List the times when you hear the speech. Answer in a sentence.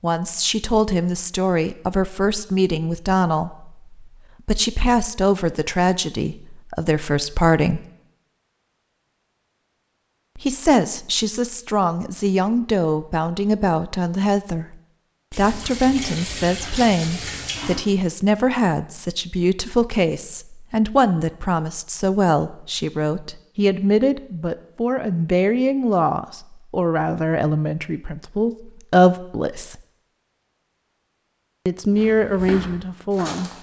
You can hear the speech from 0.0 to 7.8 s, from 10.3 to 29.8 s and from 31.6 to 33.5 s.